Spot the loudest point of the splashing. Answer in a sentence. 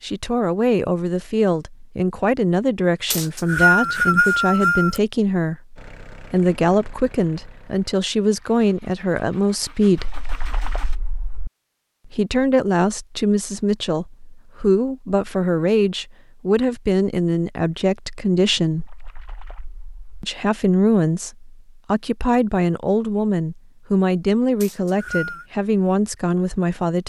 The loudest moment of the splashing is at 11 seconds.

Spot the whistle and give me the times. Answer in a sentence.
The whistle can be heard from 3.1 to 5.0 s and from 24.6 to 25.4 s.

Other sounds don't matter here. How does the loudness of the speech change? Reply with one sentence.
The loudness of the speech stays about the same.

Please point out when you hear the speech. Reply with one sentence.
You can hear the speech from 0.0 to 10.2 s, from 12.1 to 18.9 s and from 20.2 to 27.0 s.